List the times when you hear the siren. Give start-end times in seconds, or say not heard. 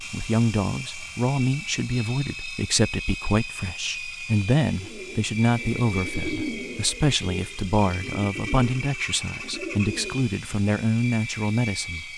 not heard.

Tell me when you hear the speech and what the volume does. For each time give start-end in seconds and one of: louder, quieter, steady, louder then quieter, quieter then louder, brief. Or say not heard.
0.0-12.1 steady.